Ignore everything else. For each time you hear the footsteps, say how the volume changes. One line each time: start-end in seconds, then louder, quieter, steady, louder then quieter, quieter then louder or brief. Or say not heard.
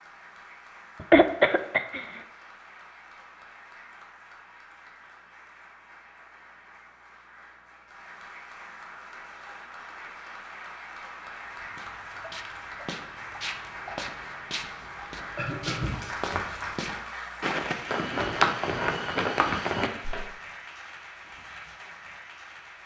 11.6-20.2 louder.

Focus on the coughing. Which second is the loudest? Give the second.
1 s.